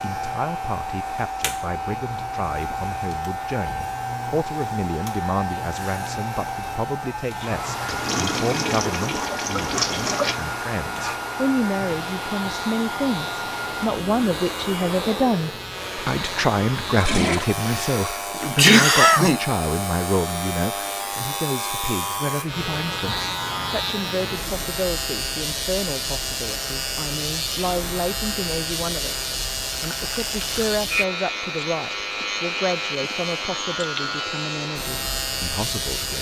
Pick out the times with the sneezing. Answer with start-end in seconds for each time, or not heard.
17.6-19.4.